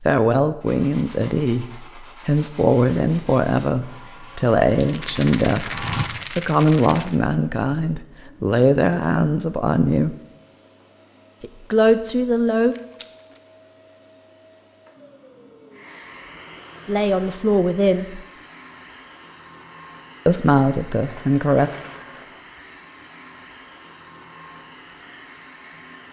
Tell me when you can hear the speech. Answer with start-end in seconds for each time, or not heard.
0.0-10.2, 11.4-12.8, 16.9-18.2, 20.2-21.7.